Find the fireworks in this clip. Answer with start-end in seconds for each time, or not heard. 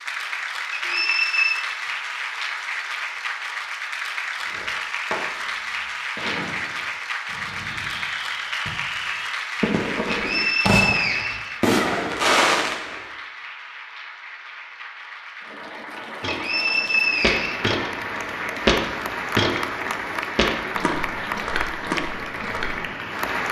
4.4-13.0.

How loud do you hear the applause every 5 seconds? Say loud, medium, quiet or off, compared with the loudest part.
loud, loud, medium, loud, loud.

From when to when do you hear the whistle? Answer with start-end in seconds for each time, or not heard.
0.7-1.6, 10.1-11.6, 16.2-17.8.